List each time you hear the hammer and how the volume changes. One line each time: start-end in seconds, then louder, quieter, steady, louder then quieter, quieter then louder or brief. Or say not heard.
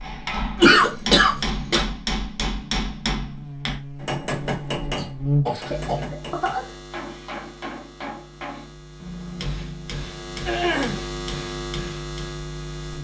0.0-12.4 quieter.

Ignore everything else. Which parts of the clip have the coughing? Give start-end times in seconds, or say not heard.
0.6-1.9, 5.0-6.7, 10.4-11.0.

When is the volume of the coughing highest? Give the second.
1 s.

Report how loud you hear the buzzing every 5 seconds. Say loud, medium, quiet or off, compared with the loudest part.
medium, loud, loud.